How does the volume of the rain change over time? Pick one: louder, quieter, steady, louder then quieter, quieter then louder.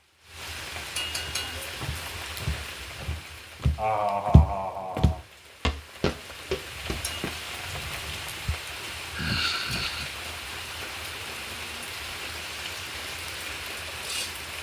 quieter then louder.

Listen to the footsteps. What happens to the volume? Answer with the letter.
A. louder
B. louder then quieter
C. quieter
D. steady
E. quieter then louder
B.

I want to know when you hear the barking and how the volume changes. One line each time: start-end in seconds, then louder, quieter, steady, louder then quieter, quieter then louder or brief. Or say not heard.
not heard.